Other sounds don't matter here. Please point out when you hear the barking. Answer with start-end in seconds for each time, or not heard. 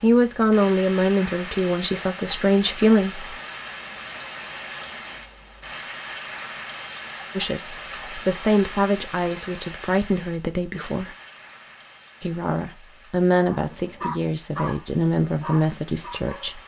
13.5-16.6.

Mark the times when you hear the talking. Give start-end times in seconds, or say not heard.
0.0-3.2, 7.3-11.2, 12.2-16.6.